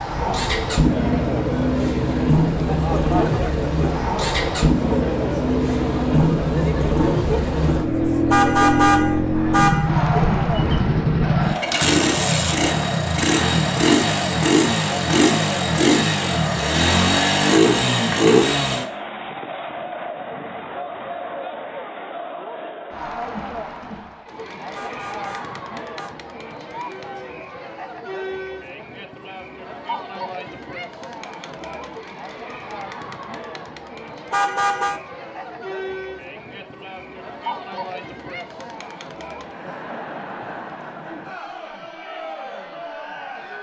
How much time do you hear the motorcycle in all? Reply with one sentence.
The motorcycle can be heard for 19 seconds in total.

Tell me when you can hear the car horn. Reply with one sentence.
The car horn can be heard from 8.3 to 9.9 s, from 24.7 to 26.1 s and from 34.3 to 35.0 s.